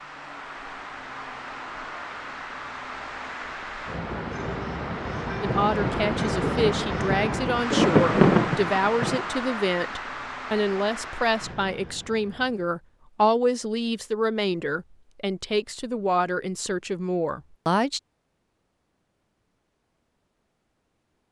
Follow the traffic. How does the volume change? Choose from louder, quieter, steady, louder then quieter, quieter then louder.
louder then quieter.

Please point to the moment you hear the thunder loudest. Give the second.
8 s.